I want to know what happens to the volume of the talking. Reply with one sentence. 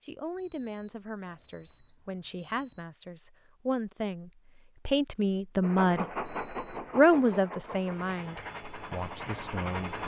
The loudness of the talking goes up, then down.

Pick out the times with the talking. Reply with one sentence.
You can hear the talking from 0.0 to 6.0 s and from 7.0 to 10.0 s.